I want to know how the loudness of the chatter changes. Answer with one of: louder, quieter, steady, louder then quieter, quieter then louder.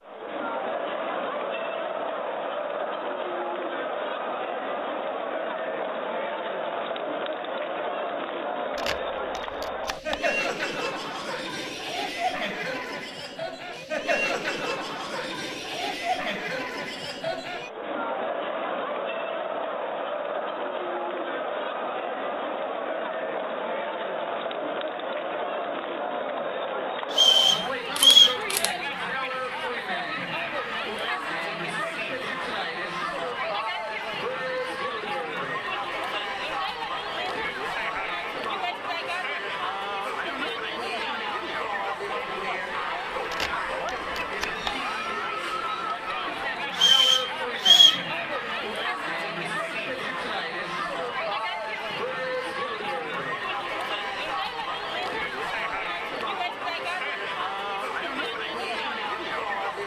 steady.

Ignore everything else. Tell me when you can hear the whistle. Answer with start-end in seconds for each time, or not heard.
27.1-28.4, 46.7-48.0.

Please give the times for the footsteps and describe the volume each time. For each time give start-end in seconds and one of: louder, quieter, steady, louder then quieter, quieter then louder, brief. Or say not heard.
not heard.